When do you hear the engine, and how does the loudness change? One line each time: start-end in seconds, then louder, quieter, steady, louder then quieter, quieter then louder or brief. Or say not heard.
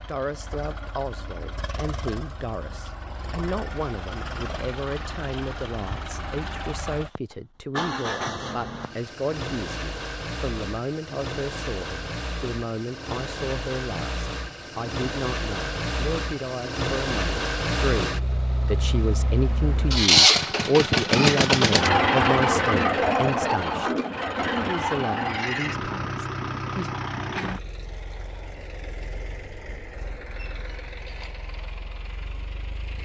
0.0-33.0 louder then quieter.